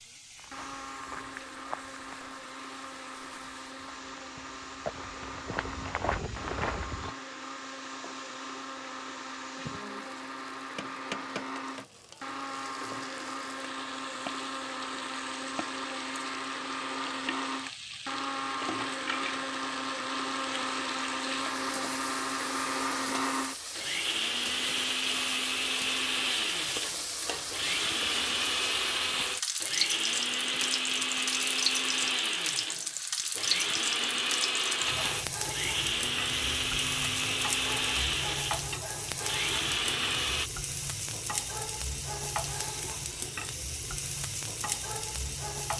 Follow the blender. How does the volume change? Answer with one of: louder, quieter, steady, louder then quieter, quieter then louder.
louder.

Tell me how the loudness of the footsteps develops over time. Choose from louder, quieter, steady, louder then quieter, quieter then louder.
quieter then louder.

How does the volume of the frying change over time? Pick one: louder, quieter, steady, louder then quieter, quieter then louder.
louder.